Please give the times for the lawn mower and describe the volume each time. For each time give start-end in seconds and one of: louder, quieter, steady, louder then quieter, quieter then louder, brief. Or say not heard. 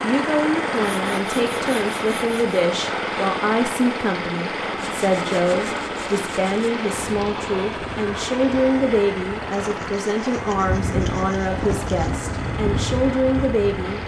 0.0-14.0 quieter.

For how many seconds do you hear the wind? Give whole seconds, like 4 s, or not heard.
7 s.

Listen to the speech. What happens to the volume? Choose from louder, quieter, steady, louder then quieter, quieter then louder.
steady.